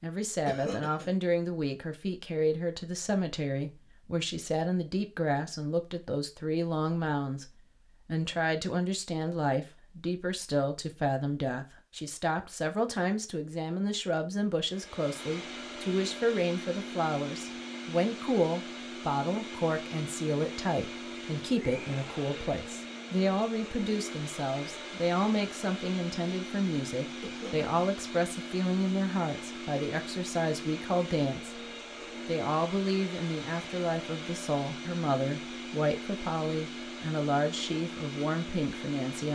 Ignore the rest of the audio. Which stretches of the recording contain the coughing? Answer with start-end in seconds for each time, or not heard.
0.5-1.1, 27.2-27.7.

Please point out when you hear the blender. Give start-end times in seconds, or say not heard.
14.7-39.3.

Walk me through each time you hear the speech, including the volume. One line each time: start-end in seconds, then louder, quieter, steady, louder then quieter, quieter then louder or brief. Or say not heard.
0.0-31.6 steady
32.2-39.3 steady.